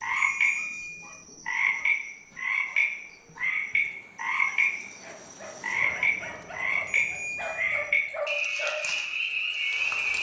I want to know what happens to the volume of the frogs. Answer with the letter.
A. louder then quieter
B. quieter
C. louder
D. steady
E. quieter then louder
D.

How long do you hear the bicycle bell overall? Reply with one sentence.
The bicycle bell can be heard for 2 seconds in total.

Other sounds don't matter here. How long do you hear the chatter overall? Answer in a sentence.
You can't hear the chatter here.